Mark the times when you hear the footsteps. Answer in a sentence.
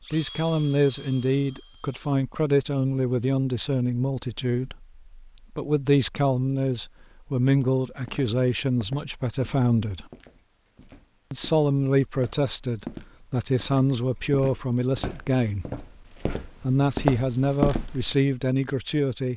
The footsteps can be heard from 7.6 to 18.1 s.